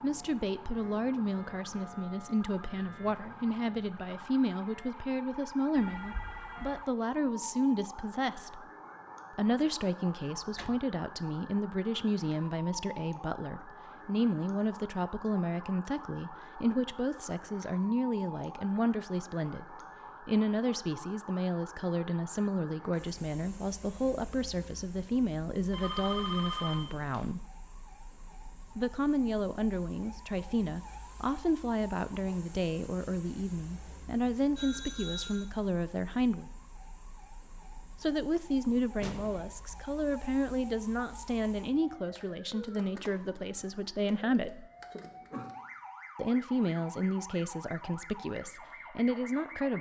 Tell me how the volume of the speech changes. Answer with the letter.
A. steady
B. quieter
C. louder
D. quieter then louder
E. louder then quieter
A.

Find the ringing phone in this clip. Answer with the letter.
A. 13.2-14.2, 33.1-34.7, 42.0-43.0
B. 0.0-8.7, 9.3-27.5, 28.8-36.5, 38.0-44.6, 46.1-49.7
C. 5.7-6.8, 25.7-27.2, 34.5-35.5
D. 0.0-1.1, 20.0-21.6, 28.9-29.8
C.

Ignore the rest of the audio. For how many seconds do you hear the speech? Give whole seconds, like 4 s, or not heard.
45 s.